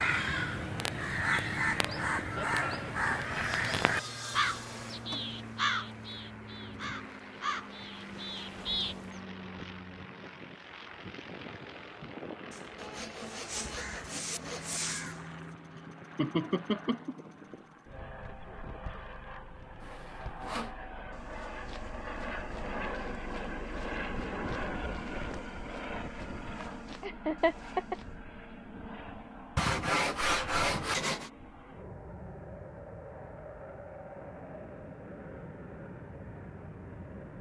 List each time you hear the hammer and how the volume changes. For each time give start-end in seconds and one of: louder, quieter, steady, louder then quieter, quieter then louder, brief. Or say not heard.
not heard.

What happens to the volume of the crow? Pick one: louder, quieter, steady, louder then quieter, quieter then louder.
quieter.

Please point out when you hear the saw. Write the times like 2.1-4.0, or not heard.
3.1-5.0, 12.8-14.8, 19.8-20.8, 29.6-31.3.